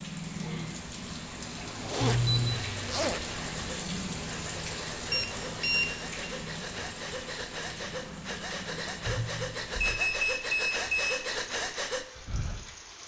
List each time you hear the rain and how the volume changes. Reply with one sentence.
The rain can be heard from 0.0 to 13.0 s, getting quieter.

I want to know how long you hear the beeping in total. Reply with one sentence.
The beeping can be heard for 4 seconds in total.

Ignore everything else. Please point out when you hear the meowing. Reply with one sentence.
You can't hear the meowing here.